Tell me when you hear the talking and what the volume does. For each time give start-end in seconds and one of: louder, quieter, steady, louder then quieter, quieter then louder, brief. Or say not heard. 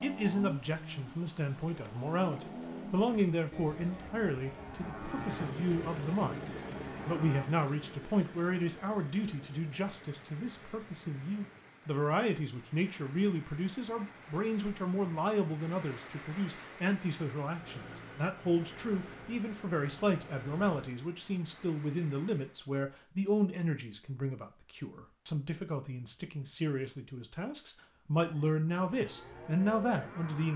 0.0-30.5 steady.